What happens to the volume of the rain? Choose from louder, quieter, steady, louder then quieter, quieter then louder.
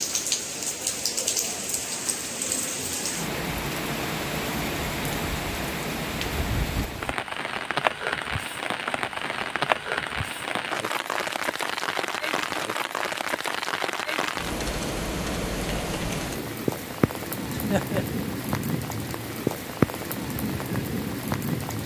steady.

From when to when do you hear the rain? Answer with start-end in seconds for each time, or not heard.
0.0-21.8.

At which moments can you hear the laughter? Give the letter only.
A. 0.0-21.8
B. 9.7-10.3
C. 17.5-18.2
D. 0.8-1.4
C.